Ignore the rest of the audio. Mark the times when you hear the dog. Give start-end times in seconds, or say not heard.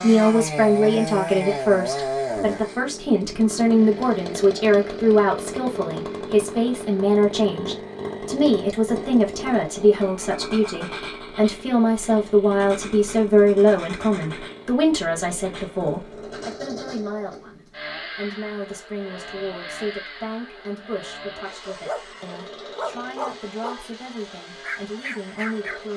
21.6-23.9, 24.6-25.9.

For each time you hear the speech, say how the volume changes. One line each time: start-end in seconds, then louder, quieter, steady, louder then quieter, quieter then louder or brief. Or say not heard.
0.0-25.9 quieter.